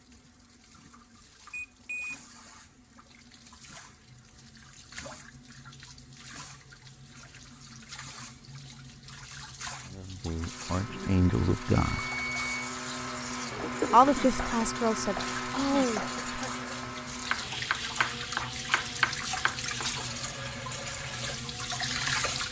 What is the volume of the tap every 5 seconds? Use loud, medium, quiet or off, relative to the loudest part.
quiet, quiet, medium, loud, loud.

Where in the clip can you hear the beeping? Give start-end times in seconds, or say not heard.
1.5-2.1, 11.8-12.7.